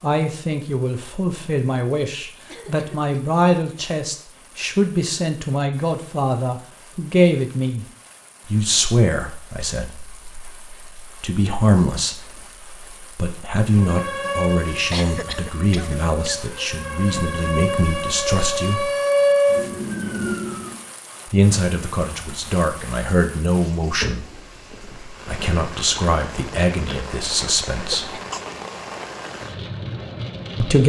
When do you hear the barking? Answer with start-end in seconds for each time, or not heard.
not heard.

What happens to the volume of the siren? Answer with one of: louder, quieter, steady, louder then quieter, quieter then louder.
quieter then louder.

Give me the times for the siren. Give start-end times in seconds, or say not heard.
13.8-20.8.